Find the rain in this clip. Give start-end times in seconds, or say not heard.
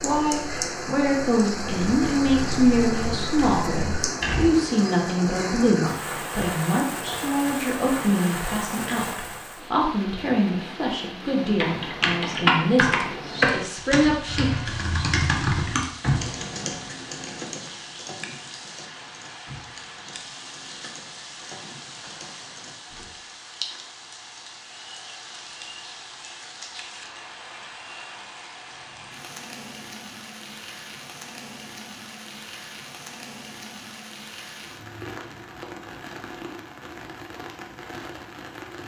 0.0-38.8.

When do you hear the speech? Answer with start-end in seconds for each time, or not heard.
0.0-14.5.